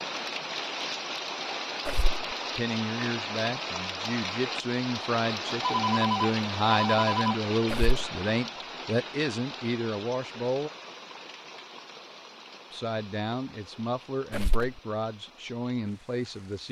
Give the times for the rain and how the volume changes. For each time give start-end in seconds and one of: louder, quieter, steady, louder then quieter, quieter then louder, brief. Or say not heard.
0.0-16.6 quieter.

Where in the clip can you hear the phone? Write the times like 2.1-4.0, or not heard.
5.6-7.4.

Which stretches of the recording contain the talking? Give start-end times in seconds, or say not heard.
2.5-10.7, 12.7-16.6.